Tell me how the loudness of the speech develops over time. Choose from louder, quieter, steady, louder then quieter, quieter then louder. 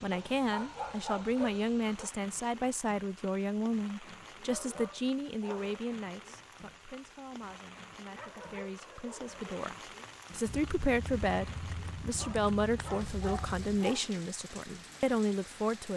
quieter then louder.